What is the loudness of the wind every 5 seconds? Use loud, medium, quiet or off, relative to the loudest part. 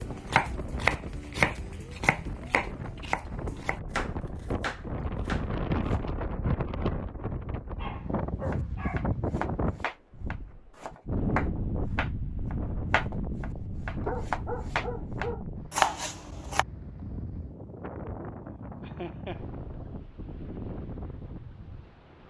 medium, loud, loud, medium, medium.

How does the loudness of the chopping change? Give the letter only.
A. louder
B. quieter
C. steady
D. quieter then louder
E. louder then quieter
D.